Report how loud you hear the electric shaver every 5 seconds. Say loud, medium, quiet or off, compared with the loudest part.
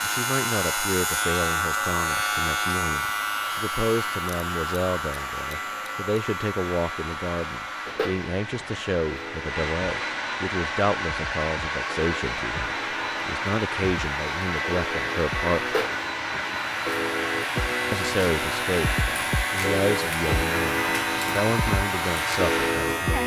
loud, medium, medium, loud, loud.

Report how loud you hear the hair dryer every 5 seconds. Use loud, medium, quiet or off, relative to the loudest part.
medium, medium, loud, loud, loud.